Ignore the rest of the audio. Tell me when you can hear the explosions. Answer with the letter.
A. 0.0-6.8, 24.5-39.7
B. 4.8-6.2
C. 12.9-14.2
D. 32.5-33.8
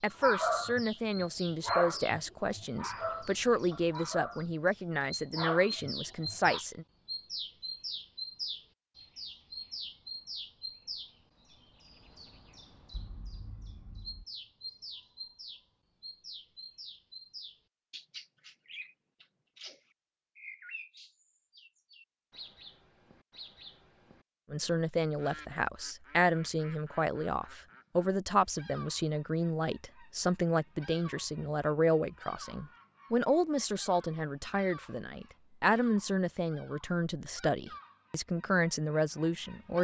C.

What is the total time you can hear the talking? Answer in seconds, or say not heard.
22 s.